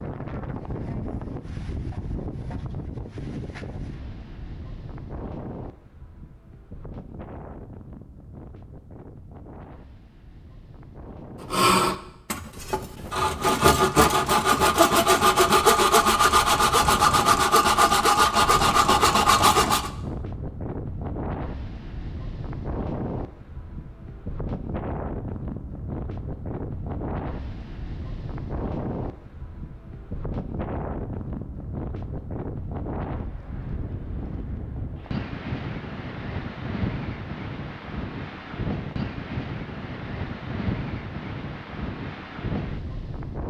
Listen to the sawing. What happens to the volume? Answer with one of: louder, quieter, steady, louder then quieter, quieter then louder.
louder.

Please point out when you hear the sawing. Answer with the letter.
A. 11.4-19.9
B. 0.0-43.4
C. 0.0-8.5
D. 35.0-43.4
A.